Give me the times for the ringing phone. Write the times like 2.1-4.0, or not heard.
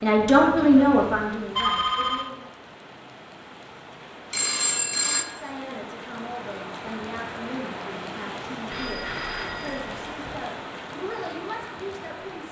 0.1-2.3, 4.3-5.2, 8.7-10.3.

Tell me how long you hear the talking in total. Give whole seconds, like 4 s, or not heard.
10 s.